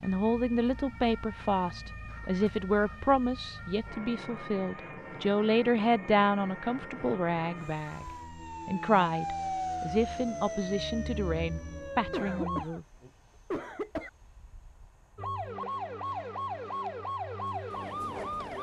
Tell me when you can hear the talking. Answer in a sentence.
The talking can be heard from 0.0 to 8.1 s and from 8.7 to 12.8 s.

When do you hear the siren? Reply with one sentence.
The siren can be heard from 0.0 to 12.7 s and from 15.2 to 18.5 s.